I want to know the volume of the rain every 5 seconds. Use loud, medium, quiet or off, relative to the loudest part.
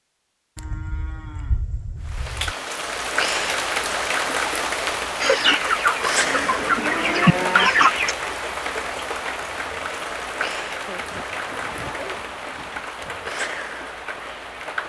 loud, loud, medium.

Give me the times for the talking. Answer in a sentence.
You can't hear the talking here.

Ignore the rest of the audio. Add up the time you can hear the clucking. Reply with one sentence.
The clucking can be heard for 3 seconds in total.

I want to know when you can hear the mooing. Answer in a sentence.
The mooing can be heard from 0.6 to 2.5 s, from 6.2 to 7.7 s and from 10.8 to 13.3 s.